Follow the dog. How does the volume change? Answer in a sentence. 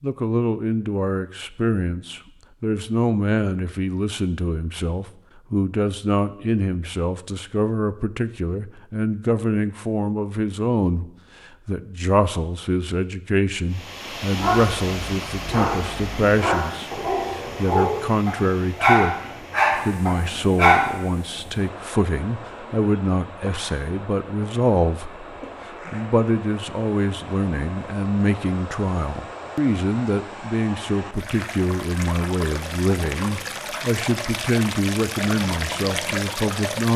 The loudness of the dog goes up.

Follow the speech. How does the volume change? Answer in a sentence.
The loudness of the speech stays about the same.